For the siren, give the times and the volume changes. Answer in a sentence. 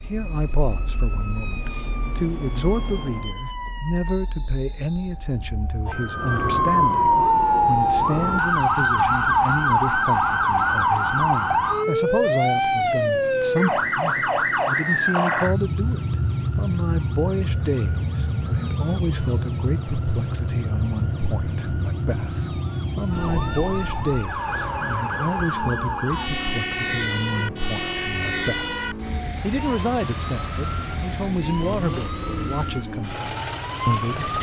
The siren can be heard from 0.0 to 34.3 s, getting louder then quieter.